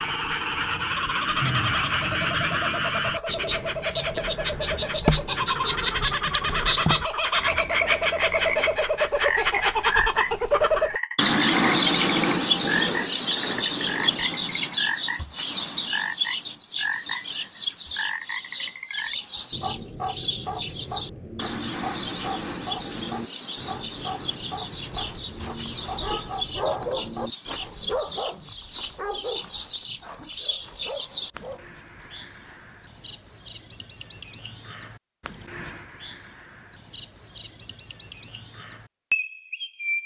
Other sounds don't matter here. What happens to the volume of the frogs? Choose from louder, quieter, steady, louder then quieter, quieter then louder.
quieter.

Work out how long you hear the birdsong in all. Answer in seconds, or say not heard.
40 s.